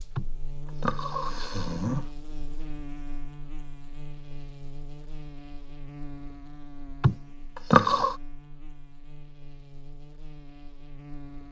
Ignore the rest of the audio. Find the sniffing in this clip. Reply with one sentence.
You can hear the sniffing from 0.1 to 2.1 s and from 7.0 to 8.2 s.